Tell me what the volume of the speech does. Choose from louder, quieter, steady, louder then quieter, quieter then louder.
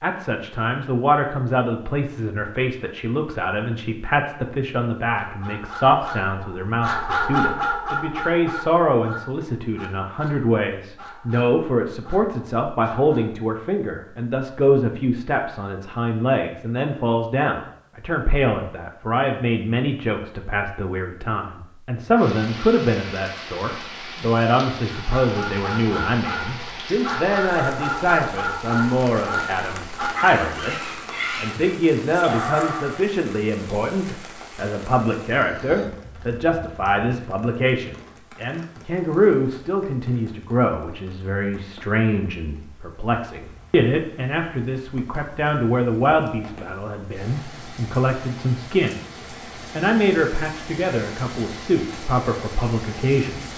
steady.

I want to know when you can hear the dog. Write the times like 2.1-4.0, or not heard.
5.2-13.3, 24.9-33.1.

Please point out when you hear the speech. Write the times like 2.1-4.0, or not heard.
0.0-53.5.